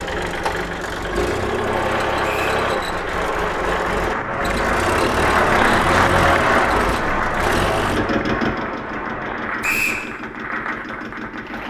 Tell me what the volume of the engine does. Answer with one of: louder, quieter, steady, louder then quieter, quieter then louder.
quieter.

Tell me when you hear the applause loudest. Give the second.
6 s.